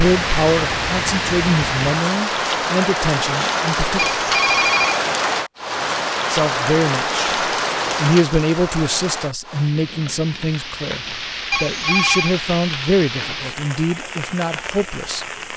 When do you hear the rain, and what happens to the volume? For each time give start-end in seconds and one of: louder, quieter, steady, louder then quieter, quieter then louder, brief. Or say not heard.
0.0-15.5 quieter.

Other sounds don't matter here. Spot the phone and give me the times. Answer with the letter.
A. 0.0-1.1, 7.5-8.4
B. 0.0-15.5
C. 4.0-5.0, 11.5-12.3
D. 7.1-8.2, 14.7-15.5
C.